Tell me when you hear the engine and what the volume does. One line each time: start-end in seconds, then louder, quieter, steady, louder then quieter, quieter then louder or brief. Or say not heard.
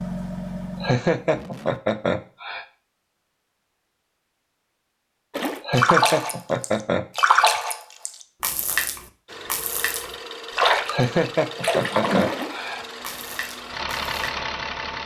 0.0-1.8 brief
9.2-15.0 louder.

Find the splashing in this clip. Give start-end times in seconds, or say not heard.
5.3-14.3.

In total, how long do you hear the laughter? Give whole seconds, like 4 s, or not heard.
6 s.